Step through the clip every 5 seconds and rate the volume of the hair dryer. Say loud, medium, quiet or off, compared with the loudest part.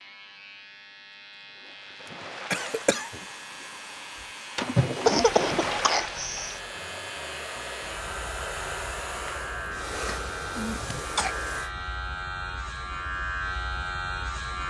medium, loud, loud.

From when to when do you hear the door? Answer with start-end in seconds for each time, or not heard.
not heard.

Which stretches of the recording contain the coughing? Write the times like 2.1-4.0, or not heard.
2.0-3.2, 5.0-6.6, 10.1-11.3.